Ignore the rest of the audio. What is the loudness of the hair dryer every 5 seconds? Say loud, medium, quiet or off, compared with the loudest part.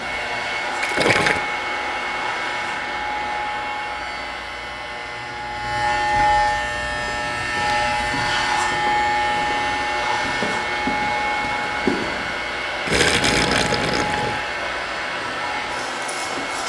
loud, medium, loud, loud.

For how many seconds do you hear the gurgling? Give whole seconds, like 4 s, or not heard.
2 s.